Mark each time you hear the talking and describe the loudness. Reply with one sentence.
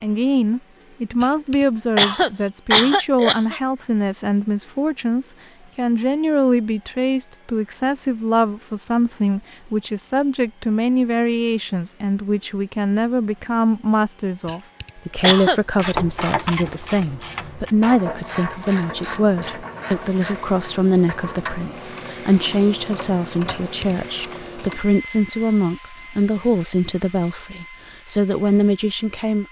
You can hear the talking from 0.0 to 29.4 s, at a steady volume.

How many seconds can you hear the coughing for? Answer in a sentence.
You can hear the coughing for 4 seconds altogether.